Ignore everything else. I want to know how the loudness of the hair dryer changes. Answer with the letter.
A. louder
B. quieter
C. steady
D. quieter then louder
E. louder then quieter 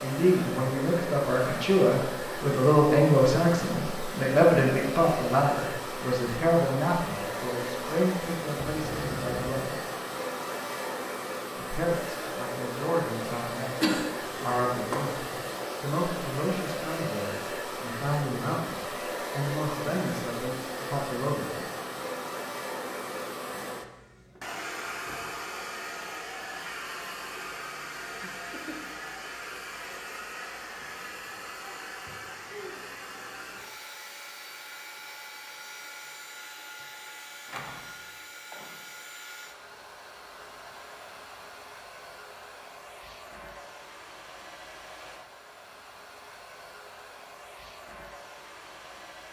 B.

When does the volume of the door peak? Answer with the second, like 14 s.
9 s.